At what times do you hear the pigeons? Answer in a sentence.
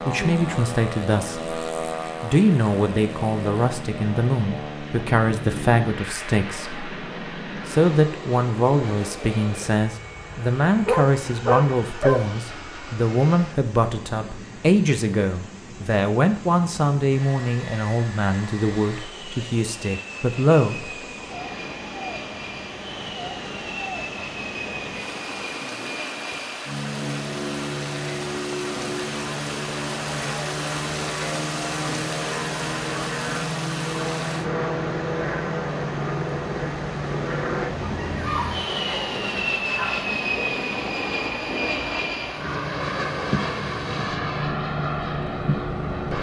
You can't hear the pigeons here.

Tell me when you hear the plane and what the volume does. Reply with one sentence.
You can hear the plane from 0.0 to 46.1 s, getting quieter then louder.